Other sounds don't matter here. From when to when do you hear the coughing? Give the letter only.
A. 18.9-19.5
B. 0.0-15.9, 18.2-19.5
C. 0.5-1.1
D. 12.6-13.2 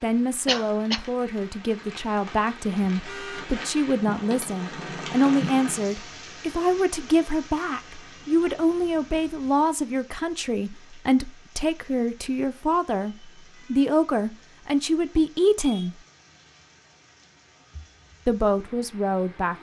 C.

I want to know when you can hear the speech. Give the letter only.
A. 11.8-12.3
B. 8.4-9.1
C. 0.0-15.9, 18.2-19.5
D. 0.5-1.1
C.